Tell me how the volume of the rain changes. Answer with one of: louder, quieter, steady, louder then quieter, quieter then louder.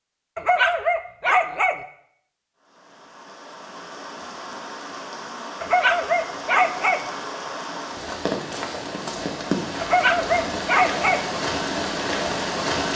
louder.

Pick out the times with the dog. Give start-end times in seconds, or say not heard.
0.3-1.8, 5.6-7.0, 9.8-11.2.